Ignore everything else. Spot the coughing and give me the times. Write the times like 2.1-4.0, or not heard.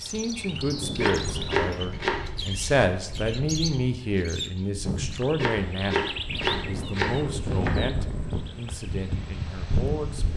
not heard.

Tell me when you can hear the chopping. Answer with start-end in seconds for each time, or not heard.
0.9-2.2, 5.3-7.8.